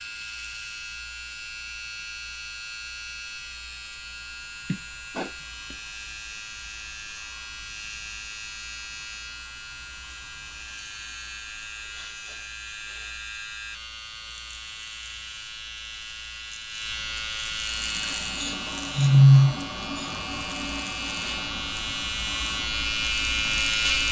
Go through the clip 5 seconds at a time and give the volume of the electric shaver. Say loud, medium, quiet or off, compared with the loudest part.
medium, medium, medium, medium, loud.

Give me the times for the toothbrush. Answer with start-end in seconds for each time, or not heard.
not heard.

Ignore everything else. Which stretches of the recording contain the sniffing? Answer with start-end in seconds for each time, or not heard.
4.7-5.8, 11.8-13.1, 18.4-20.1.